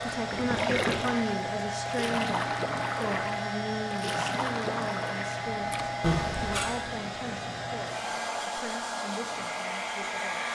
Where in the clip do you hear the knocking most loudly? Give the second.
6 s.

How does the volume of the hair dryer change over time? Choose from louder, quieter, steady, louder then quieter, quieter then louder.
steady.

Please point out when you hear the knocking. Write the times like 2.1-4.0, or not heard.
0.3-0.9, 6.0-6.8.